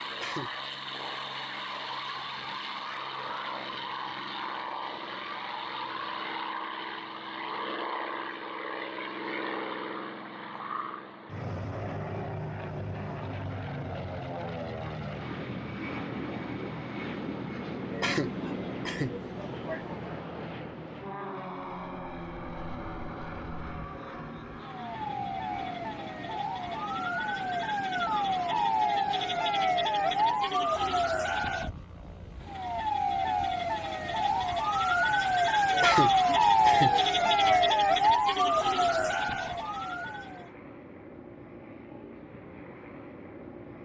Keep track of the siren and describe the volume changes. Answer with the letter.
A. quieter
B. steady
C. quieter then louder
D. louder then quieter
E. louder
E.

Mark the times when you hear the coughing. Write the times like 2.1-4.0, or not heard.
0.1-0.6, 17.9-20.1, 35.7-38.1.